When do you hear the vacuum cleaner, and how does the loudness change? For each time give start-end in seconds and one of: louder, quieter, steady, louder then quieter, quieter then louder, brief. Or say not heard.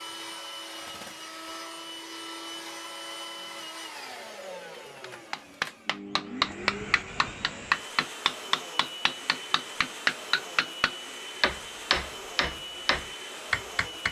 0.0-14.0 steady.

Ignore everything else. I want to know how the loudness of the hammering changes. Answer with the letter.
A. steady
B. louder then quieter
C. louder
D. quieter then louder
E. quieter
A.